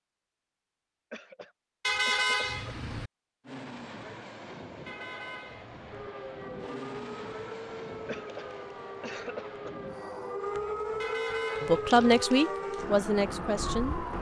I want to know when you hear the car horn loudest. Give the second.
2 s.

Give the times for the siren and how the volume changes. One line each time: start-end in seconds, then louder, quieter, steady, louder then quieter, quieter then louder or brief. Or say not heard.
5.8-14.1 louder.